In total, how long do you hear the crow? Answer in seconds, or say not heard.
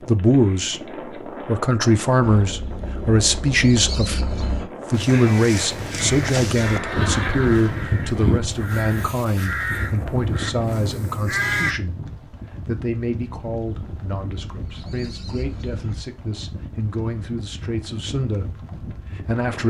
7 s.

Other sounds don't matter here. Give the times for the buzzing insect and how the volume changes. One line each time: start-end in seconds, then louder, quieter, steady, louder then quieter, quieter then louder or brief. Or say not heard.
not heard.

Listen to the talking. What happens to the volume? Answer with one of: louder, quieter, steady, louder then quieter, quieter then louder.
quieter.